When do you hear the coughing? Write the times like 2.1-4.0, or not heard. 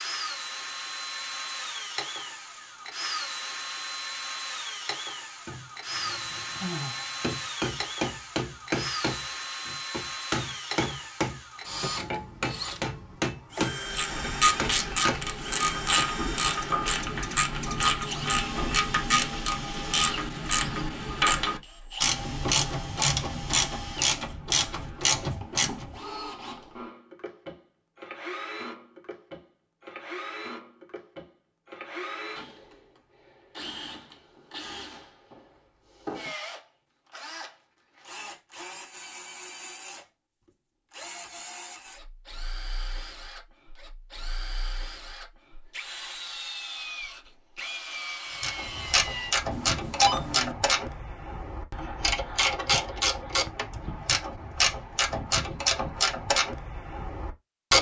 not heard.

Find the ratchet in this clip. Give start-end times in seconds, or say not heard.
13.8-25.9, 48.4-57.7.